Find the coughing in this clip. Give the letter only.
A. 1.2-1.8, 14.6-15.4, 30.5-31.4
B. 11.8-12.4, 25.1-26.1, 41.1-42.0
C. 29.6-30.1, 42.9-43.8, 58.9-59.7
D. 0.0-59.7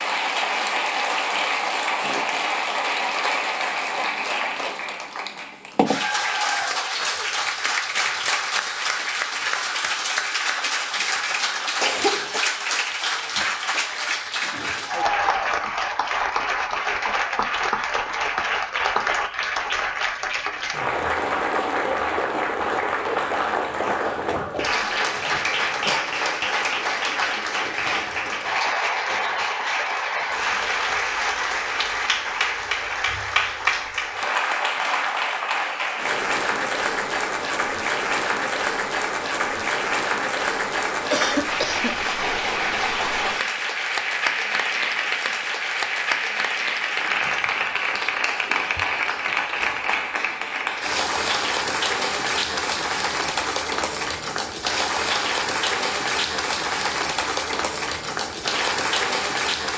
B.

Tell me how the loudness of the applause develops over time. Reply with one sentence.
The loudness of the applause stays about the same.